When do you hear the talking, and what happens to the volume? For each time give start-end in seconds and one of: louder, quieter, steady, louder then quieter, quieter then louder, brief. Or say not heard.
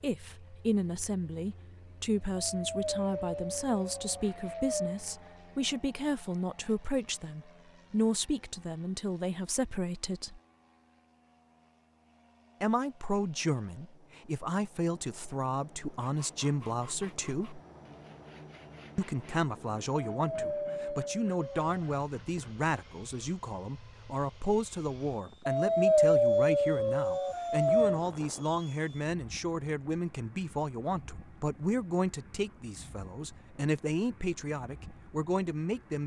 0.0-10.4 steady
12.6-17.6 steady
18.9-36.0 steady.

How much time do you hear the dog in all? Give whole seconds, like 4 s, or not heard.
7 s.